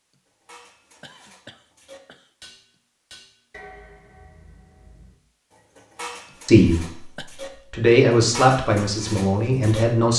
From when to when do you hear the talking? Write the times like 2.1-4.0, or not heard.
6.5-10.1.